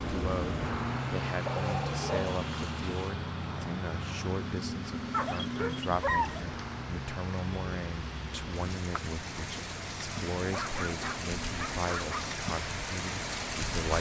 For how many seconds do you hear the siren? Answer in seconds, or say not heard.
not heard.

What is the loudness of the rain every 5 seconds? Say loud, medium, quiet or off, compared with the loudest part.
quiet, medium, loud.